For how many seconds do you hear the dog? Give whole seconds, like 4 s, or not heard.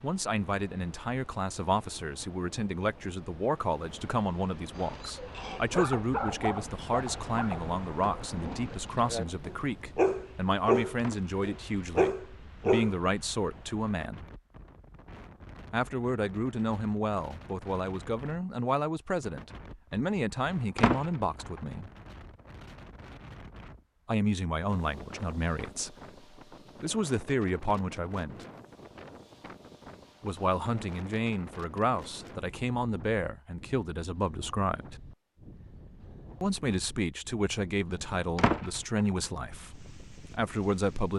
8 s.